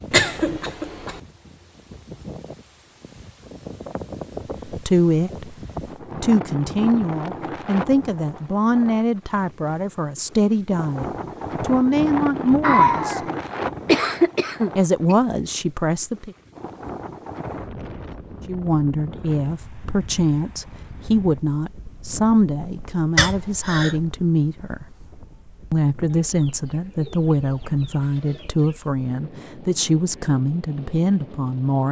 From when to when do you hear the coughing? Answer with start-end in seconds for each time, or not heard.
0.1-1.2, 12.6-15.2, 23.1-23.9.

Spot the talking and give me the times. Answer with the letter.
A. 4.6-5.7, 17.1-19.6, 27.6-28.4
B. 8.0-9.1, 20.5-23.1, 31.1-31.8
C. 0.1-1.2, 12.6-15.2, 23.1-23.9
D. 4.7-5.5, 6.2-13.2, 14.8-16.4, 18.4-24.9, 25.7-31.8
D.